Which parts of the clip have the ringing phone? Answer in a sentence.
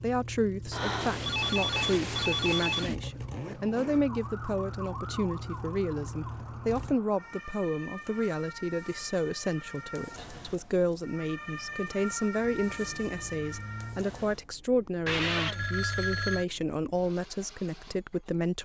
The ringing phone can be heard from 0.7 to 3.0 s and from 15.1 to 16.4 s.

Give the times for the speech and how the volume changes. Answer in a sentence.
The speech can be heard from 0.0 to 18.6 s, at a steady volume.